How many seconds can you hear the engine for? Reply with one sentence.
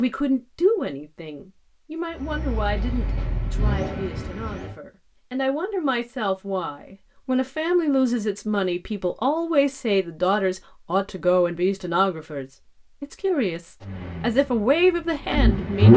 The engine can be heard for 5 seconds in total.